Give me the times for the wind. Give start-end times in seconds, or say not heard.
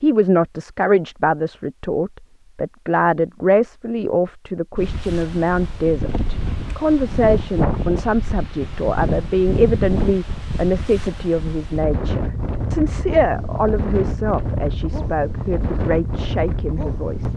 4.8-17.3.